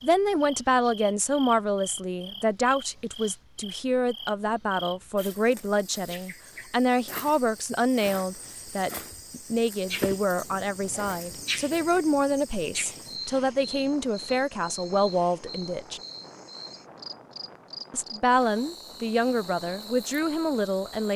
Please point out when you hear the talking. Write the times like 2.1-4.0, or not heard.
0.0-16.0, 17.9-21.1.